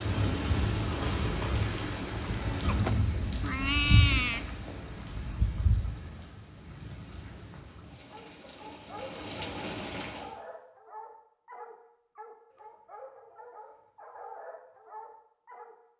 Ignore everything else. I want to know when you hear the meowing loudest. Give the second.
4 s.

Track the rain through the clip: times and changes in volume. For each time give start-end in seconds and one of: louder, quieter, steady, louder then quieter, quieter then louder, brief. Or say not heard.
0.0-10.3 quieter then louder.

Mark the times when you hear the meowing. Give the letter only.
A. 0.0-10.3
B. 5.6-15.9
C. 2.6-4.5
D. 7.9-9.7
C.